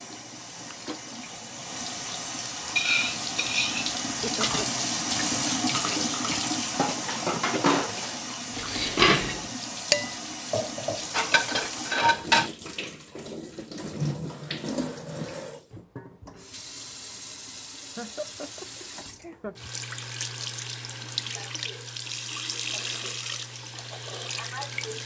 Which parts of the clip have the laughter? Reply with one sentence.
You can hear the laughter from 4.0 to 4.8 s and from 17.9 to 19.6 s.